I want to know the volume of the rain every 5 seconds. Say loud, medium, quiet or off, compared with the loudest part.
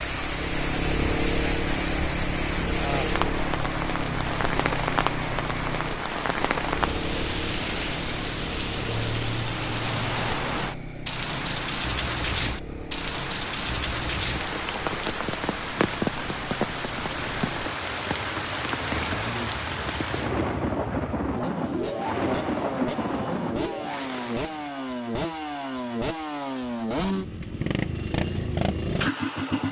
loud, loud, loud, loud, loud, off.